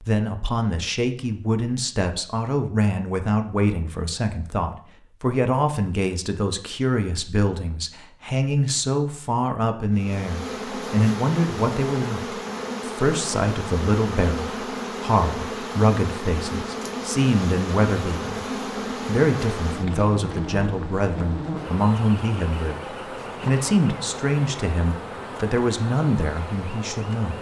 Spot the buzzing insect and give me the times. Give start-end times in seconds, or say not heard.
9.9-27.3.